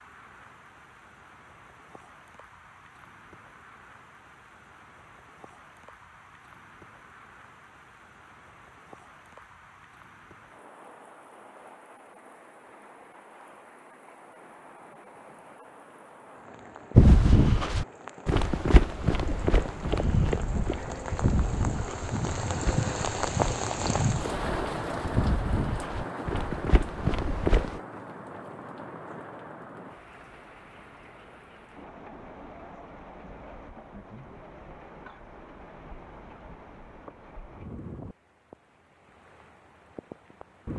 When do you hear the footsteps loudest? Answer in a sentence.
The loudest moment of the footsteps is at 17 seconds.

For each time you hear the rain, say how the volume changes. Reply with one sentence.
You can hear the rain from 0.0 to 40.7 s, getting louder then quieter.